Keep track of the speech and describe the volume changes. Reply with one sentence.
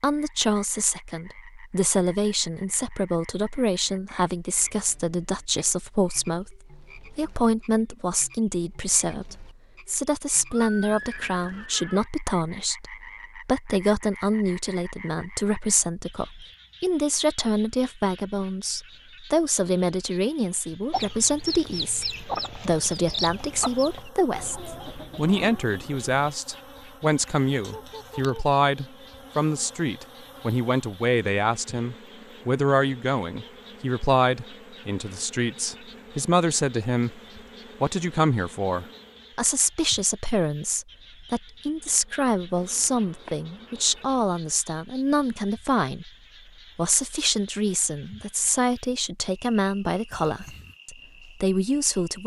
The loudness of the speech stays about the same.